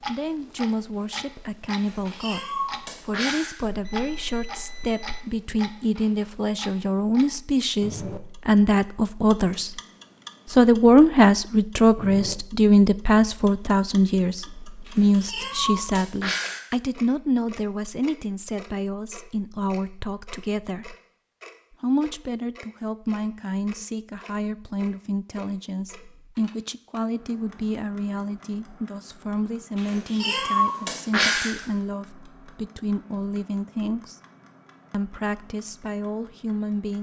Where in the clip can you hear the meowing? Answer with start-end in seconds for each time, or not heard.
1.8-3.6, 14.8-16.6, 29.8-31.6.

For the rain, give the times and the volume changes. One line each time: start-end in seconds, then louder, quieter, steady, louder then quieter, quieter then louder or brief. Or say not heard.
not heard.